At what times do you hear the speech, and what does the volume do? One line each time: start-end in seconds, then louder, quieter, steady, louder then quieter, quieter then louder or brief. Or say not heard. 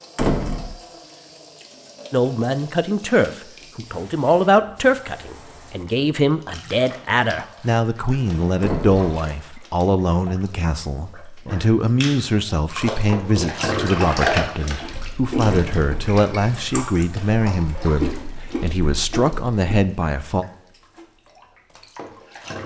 2.1-20.4 steady.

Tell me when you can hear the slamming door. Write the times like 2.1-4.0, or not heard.
0.1-0.8, 8.6-9.1, 15.4-15.9.